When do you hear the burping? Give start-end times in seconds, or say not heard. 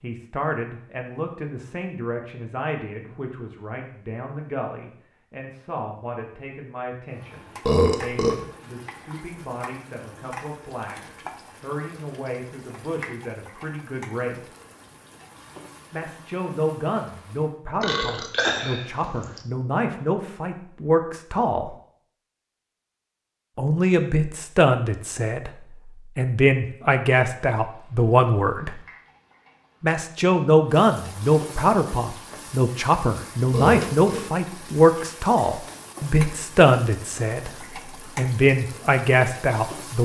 7.7-8.4, 17.8-19.4, 33.5-34.2.